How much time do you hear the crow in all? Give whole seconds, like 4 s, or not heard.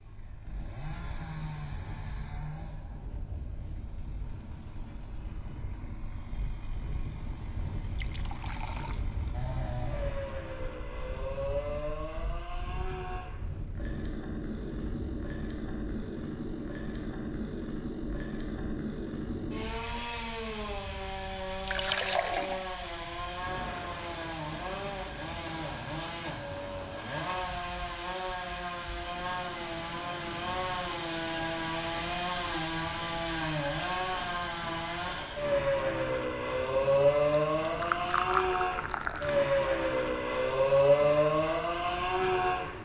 not heard.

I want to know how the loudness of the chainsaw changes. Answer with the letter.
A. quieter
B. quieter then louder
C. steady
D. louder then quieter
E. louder
E.